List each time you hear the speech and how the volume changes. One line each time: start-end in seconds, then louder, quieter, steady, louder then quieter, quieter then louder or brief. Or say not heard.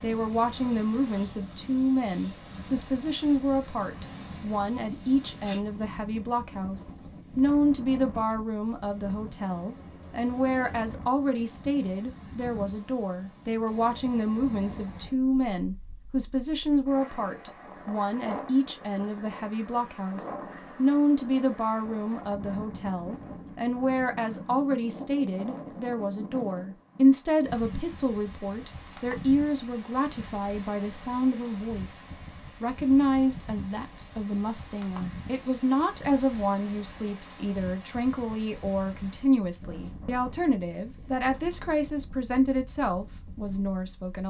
0.0-44.2 steady.